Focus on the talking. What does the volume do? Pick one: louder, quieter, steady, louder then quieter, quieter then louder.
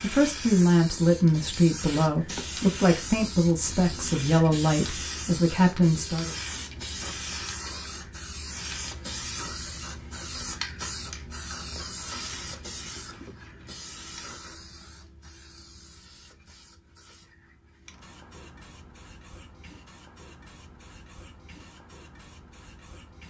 steady.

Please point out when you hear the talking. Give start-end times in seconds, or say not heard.
0.0-6.3.